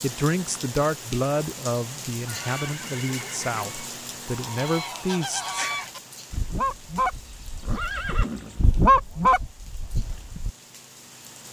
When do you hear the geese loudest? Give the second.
9 s.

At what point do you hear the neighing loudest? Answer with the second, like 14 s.
8 s.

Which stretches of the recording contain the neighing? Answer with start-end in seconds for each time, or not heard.
2.1-3.8, 7.1-8.6.